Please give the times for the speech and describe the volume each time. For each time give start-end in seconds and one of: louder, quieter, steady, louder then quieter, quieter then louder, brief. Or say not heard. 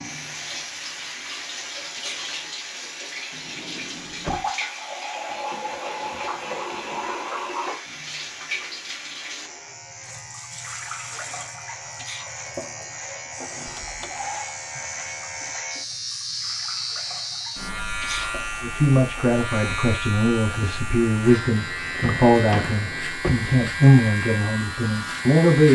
18.6-25.7 louder then quieter.